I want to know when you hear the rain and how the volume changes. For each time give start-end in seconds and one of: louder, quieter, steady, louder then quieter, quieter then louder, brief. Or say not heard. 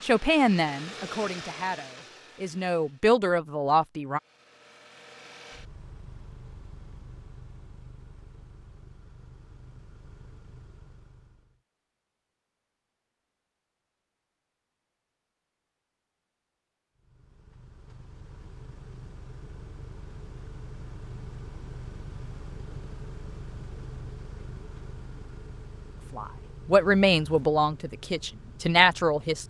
not heard.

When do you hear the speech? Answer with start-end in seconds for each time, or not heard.
0.0-4.2, 26.1-29.4.